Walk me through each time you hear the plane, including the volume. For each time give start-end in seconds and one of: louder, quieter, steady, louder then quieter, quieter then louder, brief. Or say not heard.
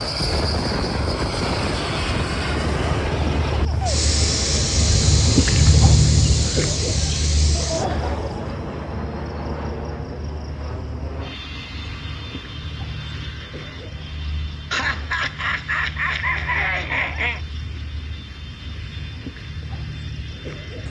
0.0-20.8 quieter.